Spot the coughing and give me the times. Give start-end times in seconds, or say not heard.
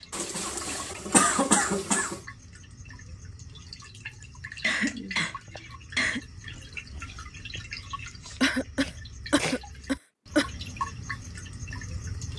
0.1-2.1, 4.2-6.2, 8.4-10.4.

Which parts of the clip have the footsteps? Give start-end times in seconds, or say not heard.
not heard.